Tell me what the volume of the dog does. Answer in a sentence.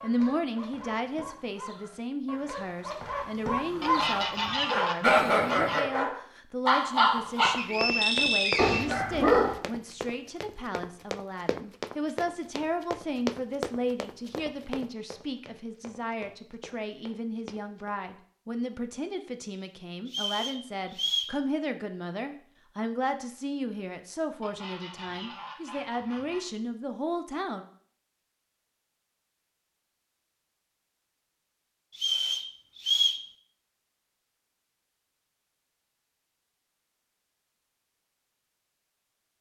The volume of the dog goes up.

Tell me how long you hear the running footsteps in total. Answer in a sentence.
The running footsteps can be heard for 11 seconds in total.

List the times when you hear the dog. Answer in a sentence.
The dog can be heard from 0.0 to 9.6 s.